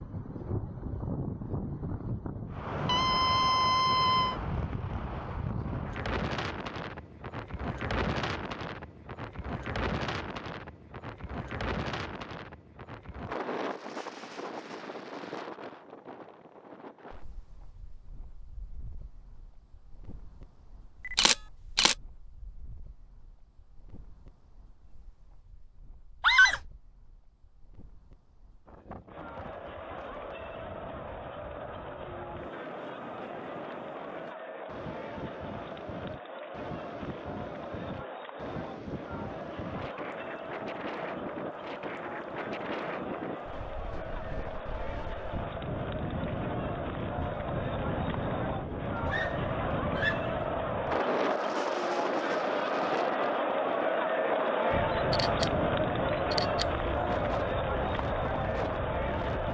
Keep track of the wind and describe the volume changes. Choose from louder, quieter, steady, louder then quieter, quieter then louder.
quieter then louder.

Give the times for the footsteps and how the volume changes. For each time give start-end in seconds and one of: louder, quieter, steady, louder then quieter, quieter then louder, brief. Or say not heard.
not heard.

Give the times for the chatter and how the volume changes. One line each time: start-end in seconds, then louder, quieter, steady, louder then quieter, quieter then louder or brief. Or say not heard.
29.1-59.4 louder.